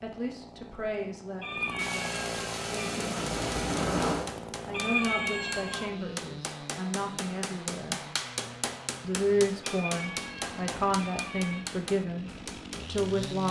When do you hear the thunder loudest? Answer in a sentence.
The volume of the thunder peaks at 4 seconds.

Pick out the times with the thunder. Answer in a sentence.
You can hear the thunder from 1.8 to 4.3 s.